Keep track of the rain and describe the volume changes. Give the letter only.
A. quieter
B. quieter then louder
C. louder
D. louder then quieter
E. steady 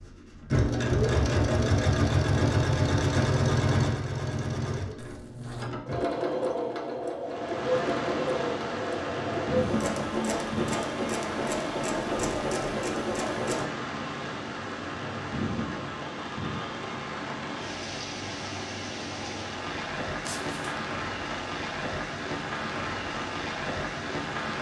E.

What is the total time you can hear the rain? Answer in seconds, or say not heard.
17 s.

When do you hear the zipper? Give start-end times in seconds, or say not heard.
5.0-5.7, 20.2-20.8.